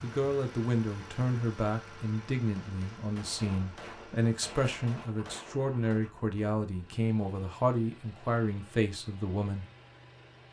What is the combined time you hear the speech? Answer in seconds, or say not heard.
10 s.